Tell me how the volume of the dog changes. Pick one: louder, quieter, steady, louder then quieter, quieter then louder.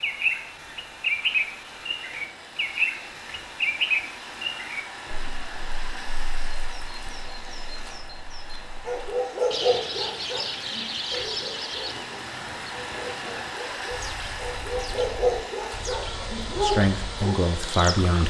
quieter then louder.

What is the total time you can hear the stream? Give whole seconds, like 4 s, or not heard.
18 s.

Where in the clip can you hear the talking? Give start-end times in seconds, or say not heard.
16.6-18.2.